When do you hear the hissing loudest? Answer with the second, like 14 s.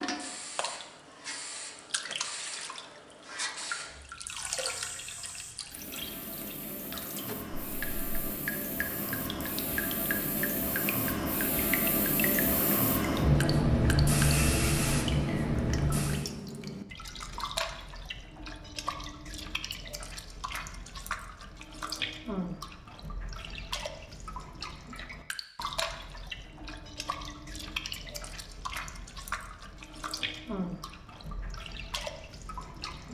14 s.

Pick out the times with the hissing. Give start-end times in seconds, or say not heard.
0.1-16.2.